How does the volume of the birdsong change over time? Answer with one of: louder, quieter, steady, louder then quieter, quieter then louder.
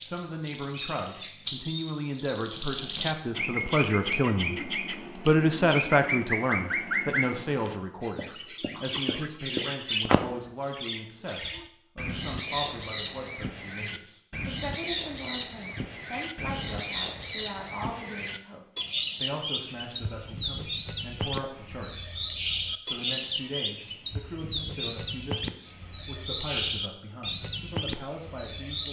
steady.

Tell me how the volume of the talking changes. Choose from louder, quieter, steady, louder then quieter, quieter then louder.
quieter.